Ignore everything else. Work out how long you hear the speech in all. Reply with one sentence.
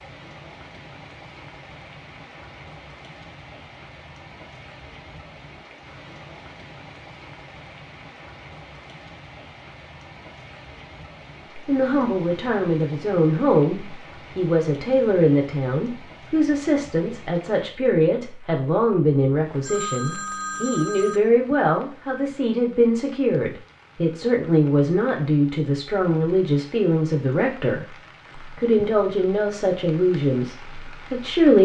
You can hear the speech for 20 seconds altogether.